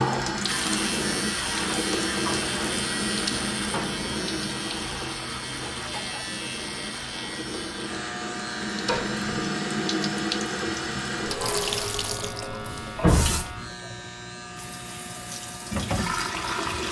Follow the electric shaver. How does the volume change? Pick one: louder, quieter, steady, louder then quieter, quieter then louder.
quieter.